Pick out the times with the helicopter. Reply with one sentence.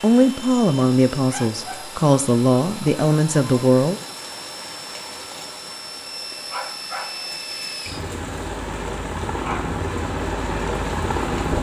The helicopter can be heard from 0.0 to 11.5 s.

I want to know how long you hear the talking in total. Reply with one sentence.
You can hear the talking for 4 seconds altogether.